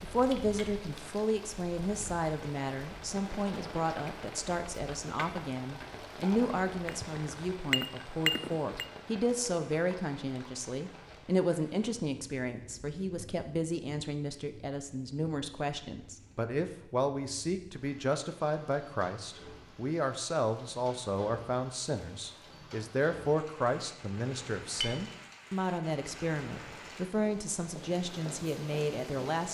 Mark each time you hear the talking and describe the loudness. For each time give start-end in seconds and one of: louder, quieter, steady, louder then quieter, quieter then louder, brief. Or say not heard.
0.0-29.4 steady.